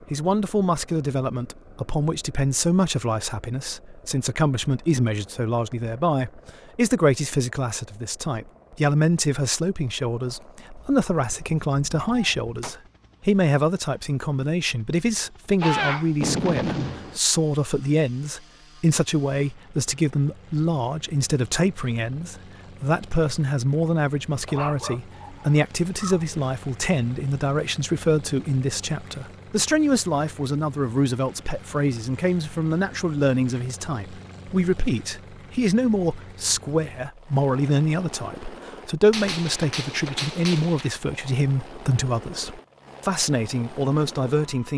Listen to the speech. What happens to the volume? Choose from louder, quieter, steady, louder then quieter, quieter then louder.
steady.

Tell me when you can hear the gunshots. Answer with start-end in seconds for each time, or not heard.
10.8-12.8, 15.6-17.2, 39.1-41.0.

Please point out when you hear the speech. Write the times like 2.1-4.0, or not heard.
0.1-44.7.